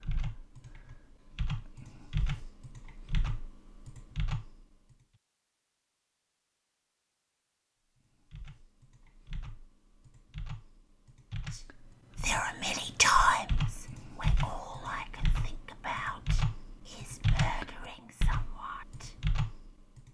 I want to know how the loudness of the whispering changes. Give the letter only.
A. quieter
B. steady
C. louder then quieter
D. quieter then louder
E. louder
A.